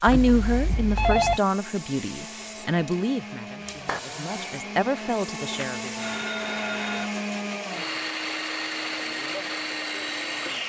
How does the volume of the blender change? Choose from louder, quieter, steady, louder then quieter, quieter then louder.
louder.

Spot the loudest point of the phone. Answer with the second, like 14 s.
1 s.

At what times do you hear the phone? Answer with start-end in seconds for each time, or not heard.
0.1-1.4, 5.4-7.1.